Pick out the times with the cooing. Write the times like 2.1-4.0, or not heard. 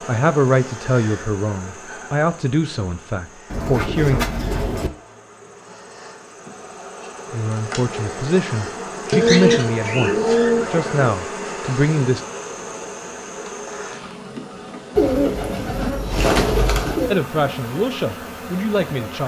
3.5-4.9, 9.1-11.1, 14.9-17.1.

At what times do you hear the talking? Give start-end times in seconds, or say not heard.
0.1-4.2, 7.3-12.2, 17.1-19.2.